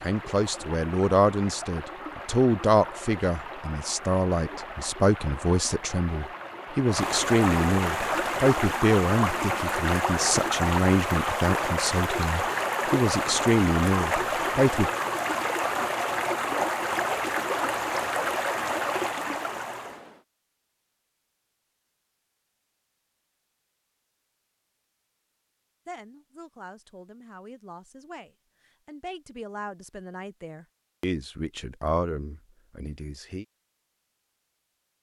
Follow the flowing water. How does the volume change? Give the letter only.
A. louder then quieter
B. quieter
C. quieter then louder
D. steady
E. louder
E.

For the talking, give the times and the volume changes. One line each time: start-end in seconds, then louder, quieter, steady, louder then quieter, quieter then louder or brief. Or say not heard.
0.0-14.9 steady
25.9-33.5 louder.